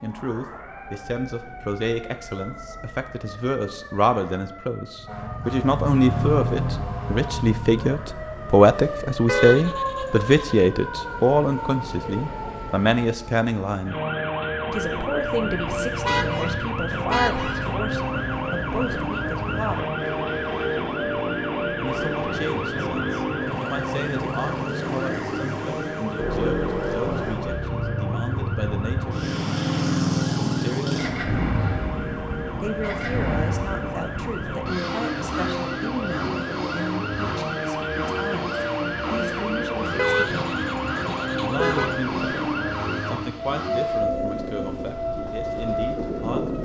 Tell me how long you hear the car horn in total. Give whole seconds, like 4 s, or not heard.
5 s.